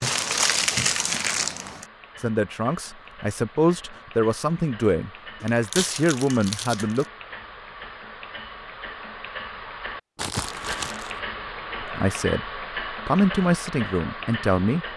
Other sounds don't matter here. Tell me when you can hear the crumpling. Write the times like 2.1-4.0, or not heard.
0.0-1.9, 5.4-7.0, 10.2-11.2.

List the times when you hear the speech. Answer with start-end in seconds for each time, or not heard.
2.2-7.0, 11.8-14.8.